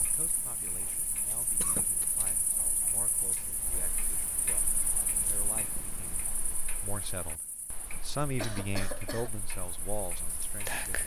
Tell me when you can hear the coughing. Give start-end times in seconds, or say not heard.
1.6-2.2, 7.9-9.3.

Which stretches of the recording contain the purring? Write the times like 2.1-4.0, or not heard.
4.6-6.6.